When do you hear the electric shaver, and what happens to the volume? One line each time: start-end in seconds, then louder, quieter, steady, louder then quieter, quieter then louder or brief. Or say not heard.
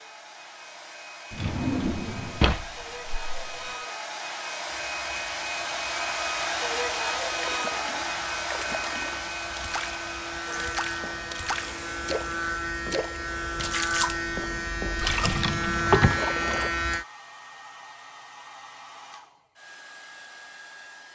4.7-17.1 louder.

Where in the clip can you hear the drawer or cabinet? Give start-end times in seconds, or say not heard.
1.3-3.5, 15.2-16.2.